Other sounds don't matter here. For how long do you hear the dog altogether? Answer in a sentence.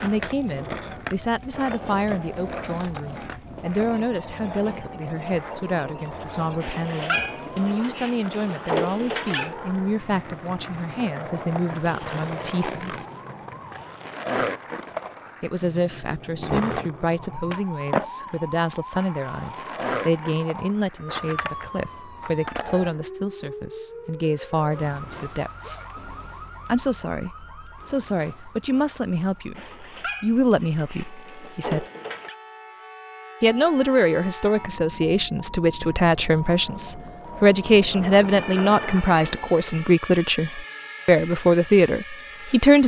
The dog can be heard for 6 seconds in total.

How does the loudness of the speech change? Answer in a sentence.
The loudness of the speech goes up.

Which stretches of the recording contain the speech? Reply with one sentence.
You can hear the speech from 0.0 to 13.1 s, from 15.4 to 25.9 s, from 26.6 to 31.9 s and from 33.4 to 42.8 s.